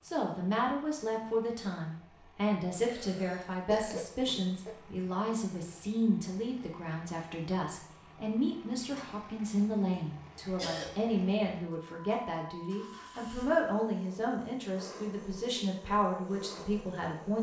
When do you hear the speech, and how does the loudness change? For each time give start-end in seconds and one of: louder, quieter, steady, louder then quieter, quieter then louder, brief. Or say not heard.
0.0-17.3 steady.